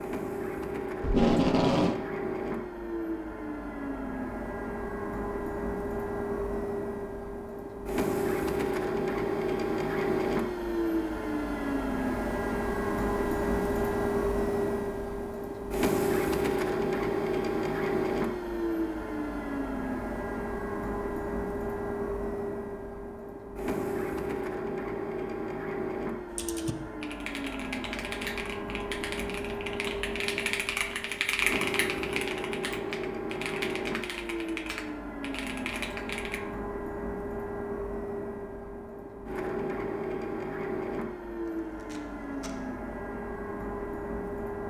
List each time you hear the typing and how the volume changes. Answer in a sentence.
The typing can be heard from 26.3 to 36.4 s, getting louder then quieter.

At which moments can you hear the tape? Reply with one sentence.
You can hear the tape from 1.0 to 1.9 s and from 41.8 to 42.5 s.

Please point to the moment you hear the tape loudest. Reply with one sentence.
The loudest moment of the tape is at 1 second.